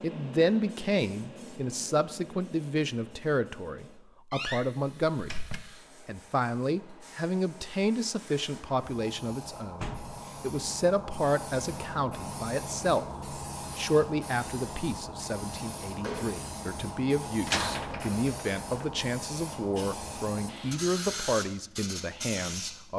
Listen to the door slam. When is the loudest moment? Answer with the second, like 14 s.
18 s.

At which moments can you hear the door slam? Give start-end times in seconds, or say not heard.
4.3-5.6, 9.8-10.3, 17.4-18.9.